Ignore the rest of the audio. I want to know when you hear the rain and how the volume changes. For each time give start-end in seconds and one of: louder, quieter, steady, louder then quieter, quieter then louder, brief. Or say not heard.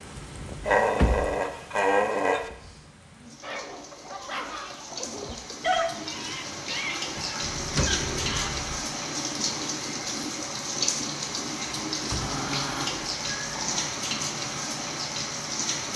0.0-15.9 louder.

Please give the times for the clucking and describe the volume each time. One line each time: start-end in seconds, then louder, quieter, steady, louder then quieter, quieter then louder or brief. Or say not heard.
3.4-8.7 louder then quieter.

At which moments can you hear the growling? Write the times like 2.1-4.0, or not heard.
0.7-2.5, 7.4-8.6, 12.2-13.9.